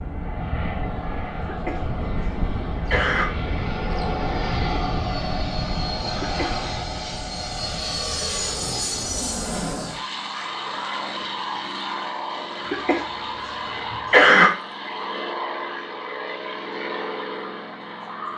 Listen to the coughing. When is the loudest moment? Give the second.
14 s.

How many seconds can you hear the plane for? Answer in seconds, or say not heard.
18 s.